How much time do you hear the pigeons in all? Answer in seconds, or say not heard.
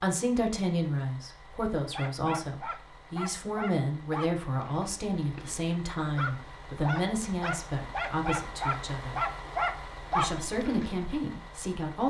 not heard.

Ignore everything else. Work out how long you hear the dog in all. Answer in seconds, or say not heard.
9 s.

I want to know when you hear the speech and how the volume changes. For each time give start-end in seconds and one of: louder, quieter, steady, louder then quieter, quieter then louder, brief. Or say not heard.
0.0-9.2 steady
10.2-12.0 brief.